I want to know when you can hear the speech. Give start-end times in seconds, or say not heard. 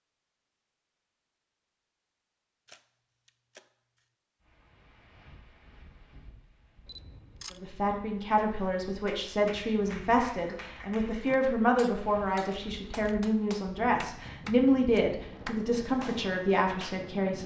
7.5-17.4.